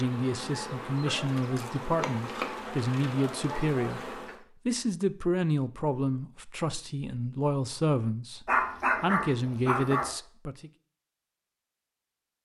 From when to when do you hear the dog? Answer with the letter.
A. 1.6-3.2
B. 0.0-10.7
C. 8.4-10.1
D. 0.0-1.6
C.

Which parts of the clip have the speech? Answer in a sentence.
You can hear the speech from 0.0 to 10.7 s.